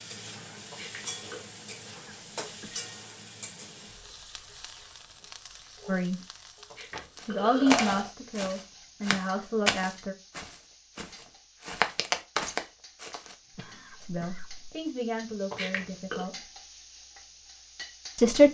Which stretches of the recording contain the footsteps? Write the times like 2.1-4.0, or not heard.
7.2-13.3.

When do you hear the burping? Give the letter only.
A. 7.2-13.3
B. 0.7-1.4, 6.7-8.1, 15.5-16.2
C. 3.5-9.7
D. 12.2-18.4
B.